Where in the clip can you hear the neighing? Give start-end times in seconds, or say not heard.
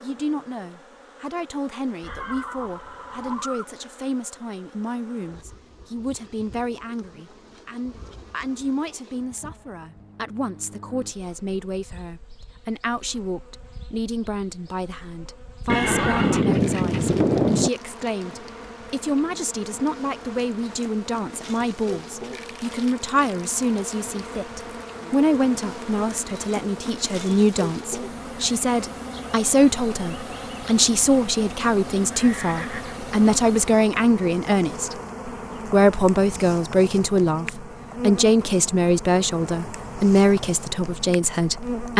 2.0-3.6, 15.7-17.7, 32.1-33.0.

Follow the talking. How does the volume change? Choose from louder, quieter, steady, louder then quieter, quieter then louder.
louder.